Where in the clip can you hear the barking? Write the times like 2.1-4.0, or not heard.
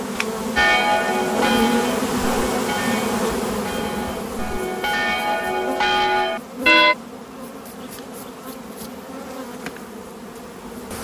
not heard.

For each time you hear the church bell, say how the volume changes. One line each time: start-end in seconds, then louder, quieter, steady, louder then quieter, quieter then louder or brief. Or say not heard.
0.6-7.0 quieter then louder.